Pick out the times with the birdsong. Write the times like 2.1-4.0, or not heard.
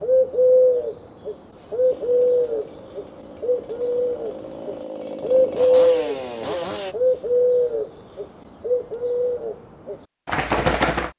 0.0-11.1.